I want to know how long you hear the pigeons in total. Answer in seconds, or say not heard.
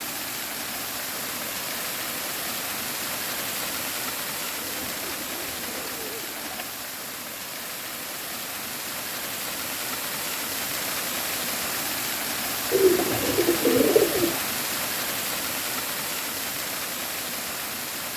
4 s.